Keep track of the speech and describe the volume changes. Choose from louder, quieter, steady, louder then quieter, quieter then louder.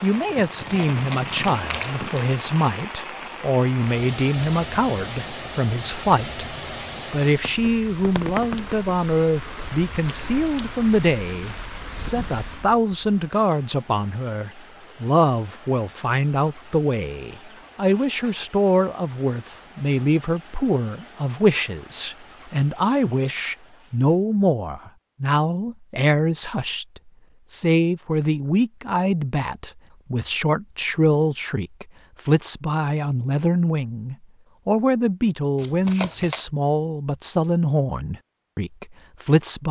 steady.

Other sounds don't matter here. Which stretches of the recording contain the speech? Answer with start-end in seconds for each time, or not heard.
0.0-6.5, 7.1-39.6.